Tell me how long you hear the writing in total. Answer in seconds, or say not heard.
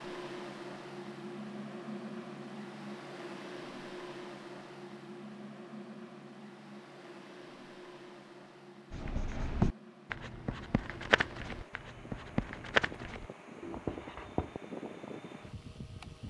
6 s.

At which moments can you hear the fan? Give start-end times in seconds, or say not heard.
0.0-16.2.